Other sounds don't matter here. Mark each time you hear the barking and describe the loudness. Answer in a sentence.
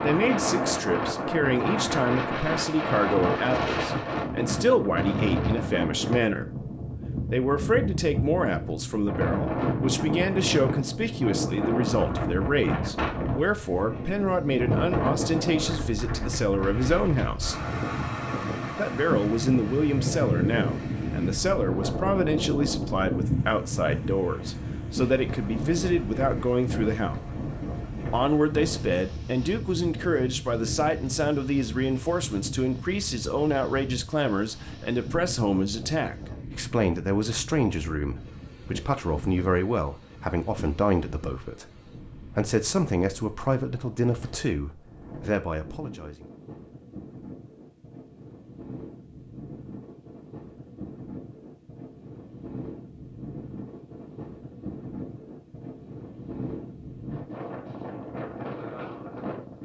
The barking can't be heard in this clip.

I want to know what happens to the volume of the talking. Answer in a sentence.
The loudness of the talking stays about the same.